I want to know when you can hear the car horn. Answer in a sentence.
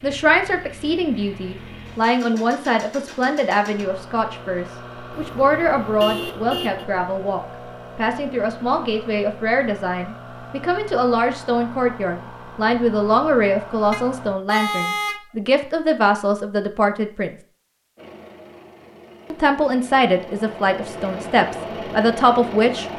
You can hear the car horn from 5.1 to 6.8 s and from 13.9 to 15.7 s.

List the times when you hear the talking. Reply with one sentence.
The talking can be heard from 0.0 to 17.3 s and from 19.3 to 22.9 s.